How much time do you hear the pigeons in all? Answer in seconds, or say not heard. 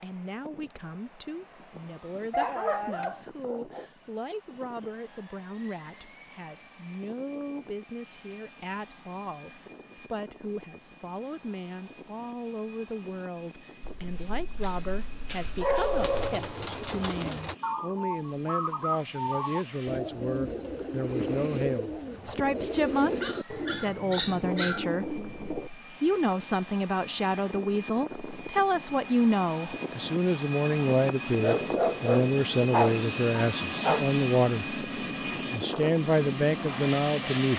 10 s.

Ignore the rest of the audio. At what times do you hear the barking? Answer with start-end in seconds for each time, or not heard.
2.3-3.9, 13.8-16.4, 23.2-24.9, 31.4-34.1.